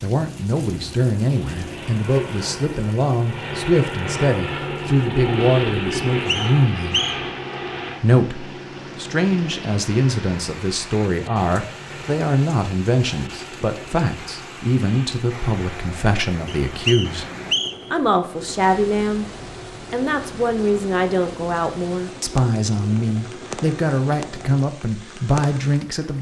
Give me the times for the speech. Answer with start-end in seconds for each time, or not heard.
0.0-7.0, 8.0-17.2, 17.9-19.2, 19.9-26.1.